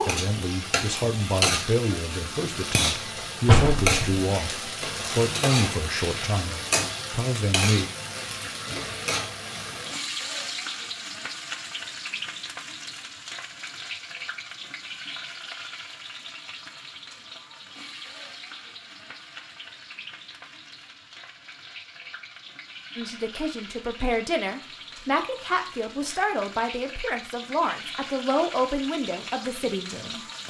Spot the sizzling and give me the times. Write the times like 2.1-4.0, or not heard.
0.0-30.4.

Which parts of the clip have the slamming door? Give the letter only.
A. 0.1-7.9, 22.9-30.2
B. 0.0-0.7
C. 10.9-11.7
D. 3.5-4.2
D.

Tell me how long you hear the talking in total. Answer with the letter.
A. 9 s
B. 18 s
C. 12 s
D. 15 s
D.